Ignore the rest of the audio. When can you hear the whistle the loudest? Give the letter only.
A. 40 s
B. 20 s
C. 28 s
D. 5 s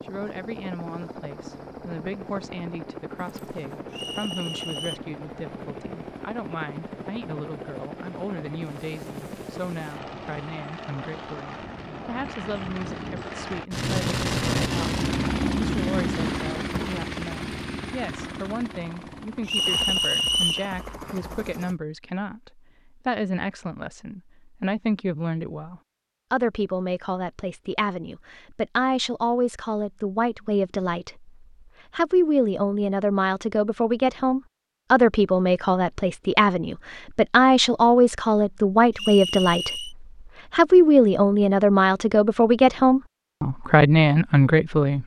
B.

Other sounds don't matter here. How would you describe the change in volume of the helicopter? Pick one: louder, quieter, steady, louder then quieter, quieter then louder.
louder then quieter.